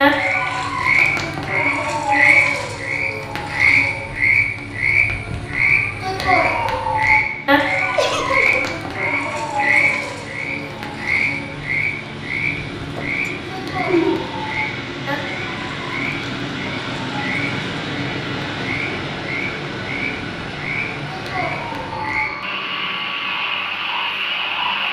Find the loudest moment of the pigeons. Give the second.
14 s.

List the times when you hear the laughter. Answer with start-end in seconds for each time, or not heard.
8.0-8.7.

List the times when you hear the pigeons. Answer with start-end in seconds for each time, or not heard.
12.7-14.2.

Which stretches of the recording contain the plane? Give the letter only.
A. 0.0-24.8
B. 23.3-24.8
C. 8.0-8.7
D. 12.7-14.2
A.